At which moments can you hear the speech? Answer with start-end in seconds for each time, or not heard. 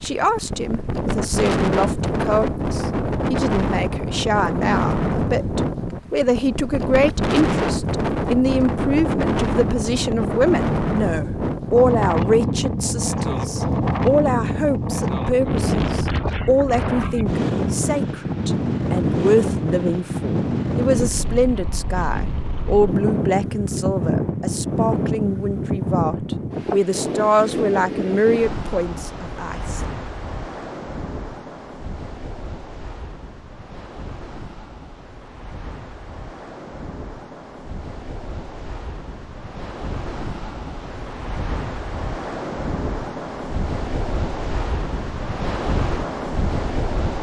0.0-29.8.